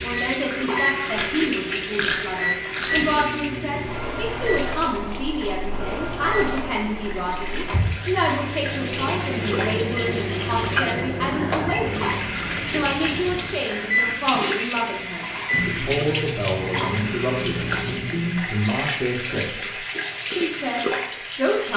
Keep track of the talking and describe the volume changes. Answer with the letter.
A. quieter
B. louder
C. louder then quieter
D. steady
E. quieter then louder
D.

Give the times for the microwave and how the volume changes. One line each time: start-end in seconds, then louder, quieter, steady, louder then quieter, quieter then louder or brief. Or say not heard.
0.0-18.5 steady.